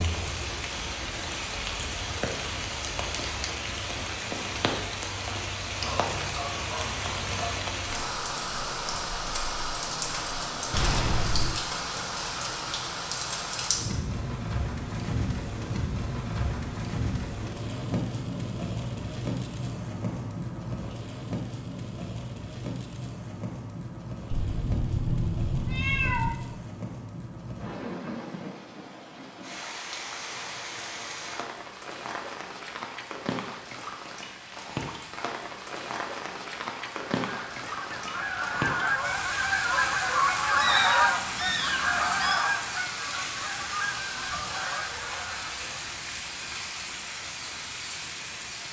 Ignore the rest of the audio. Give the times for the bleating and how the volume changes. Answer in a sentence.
The bleating can't be heard in this clip.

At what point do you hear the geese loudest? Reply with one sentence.
The loudest moment of the geese is at 41 seconds.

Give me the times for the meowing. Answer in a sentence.
The meowing can be heard from 10.7 to 11.6 s, from 24.3 to 26.3 s and from 40.5 to 42.4 s.